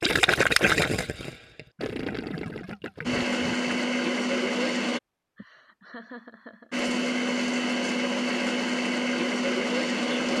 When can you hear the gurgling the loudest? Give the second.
1 s.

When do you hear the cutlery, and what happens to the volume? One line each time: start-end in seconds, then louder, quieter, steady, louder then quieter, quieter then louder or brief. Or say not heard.
not heard.